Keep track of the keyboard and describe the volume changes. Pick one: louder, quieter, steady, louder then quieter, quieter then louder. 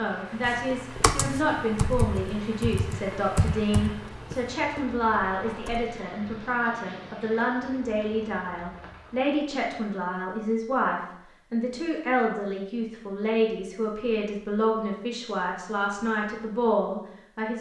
quieter.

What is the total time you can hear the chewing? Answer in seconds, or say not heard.
not heard.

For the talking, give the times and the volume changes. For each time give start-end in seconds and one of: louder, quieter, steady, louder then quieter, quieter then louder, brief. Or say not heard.
0.0-17.5 steady.